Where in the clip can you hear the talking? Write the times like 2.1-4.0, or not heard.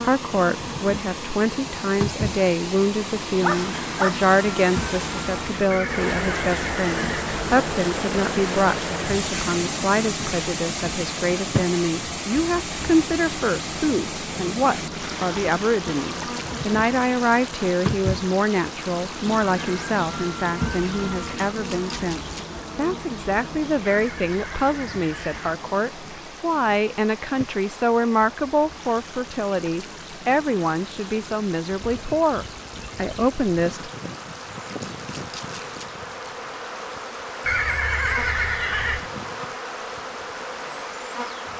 0.0-33.9.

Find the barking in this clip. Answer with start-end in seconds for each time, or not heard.
3.4-4.2.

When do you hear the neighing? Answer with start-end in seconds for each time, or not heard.
5.7-7.3, 23.9-25.4, 37.5-39.1.